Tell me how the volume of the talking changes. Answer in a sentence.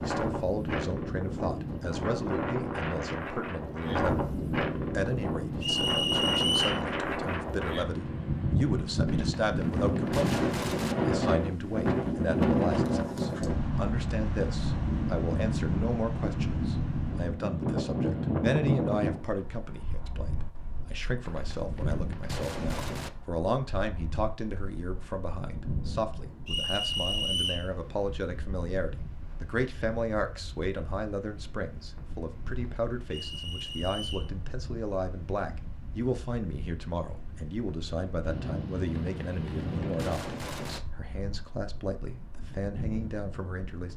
The loudness of the talking stays about the same.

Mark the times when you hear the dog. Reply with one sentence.
You can't hear the dog here.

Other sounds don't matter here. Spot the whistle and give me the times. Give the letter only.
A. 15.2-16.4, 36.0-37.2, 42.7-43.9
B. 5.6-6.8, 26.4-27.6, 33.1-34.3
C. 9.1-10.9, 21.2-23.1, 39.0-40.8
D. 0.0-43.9
B.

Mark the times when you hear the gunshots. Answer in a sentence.
You can hear the gunshots from 9.1 to 10.9 s, from 21.2 to 23.1 s and from 39.0 to 40.8 s.